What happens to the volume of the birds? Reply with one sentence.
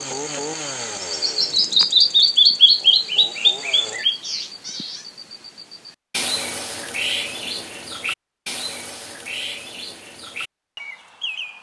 The loudness of the birds goes down.